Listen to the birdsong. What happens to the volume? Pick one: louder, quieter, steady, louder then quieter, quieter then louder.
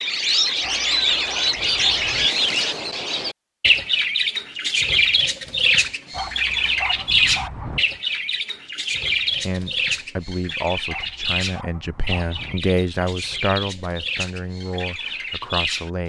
quieter.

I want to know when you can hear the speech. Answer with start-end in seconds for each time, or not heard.
9.4-16.0.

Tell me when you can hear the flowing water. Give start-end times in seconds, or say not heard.
not heard.